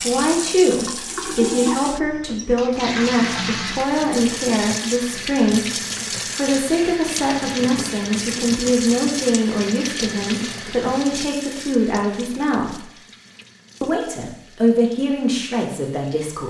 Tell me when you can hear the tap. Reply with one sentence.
The tap can be heard from 0.0 to 16.4 s.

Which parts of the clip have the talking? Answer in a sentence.
The talking can be heard from 0.0 to 12.8 s and from 13.8 to 16.4 s.